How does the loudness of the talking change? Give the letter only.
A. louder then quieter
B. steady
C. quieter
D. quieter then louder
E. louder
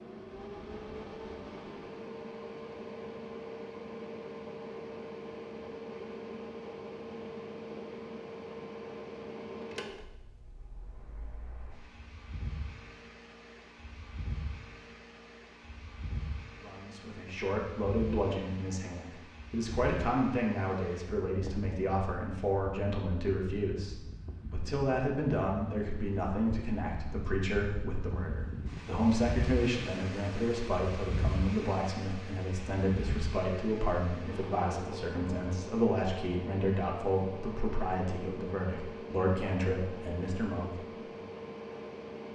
B.